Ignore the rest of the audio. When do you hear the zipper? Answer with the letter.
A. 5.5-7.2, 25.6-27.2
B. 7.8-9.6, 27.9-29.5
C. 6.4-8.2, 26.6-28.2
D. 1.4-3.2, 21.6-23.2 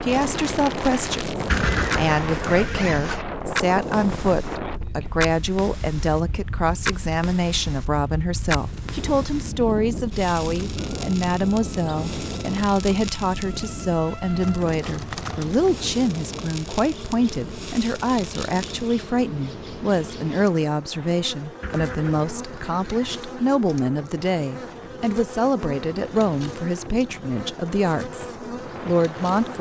D.